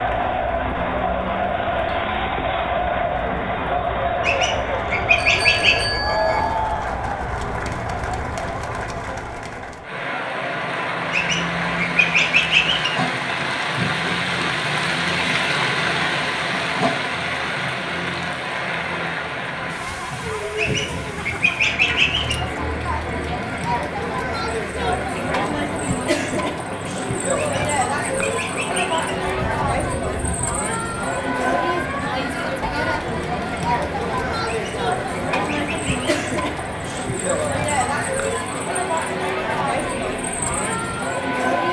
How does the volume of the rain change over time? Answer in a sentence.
The volume of the rain goes up, then down.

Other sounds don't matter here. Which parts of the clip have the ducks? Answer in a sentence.
The ducks can be heard from 4.2 to 5.8 s, from 11.1 to 12.9 s, from 20.6 to 22.4 s, from 27.4 to 29.1 s and from 34.5 to 36.1 s.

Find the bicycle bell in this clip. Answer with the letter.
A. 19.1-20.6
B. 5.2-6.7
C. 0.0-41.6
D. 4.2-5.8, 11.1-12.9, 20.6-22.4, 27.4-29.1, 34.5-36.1
B.